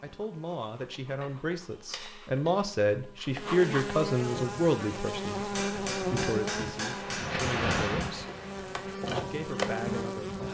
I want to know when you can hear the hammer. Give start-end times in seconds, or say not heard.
1.2-2.5, 5.5-8.1.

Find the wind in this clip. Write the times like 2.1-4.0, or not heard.
4.2-10.4.